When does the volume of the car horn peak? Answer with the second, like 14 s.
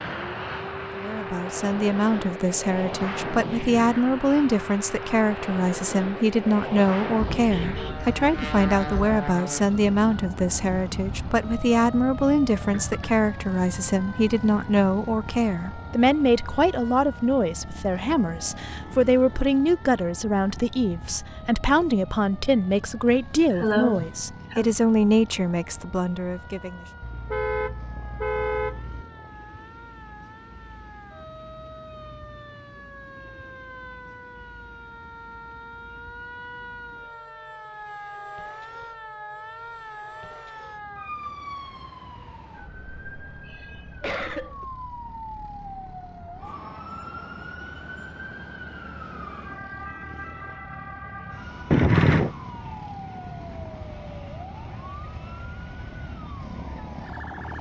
52 s.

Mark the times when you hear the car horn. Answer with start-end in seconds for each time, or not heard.
7.3-9.2, 27.0-29.1, 51.7-52.4.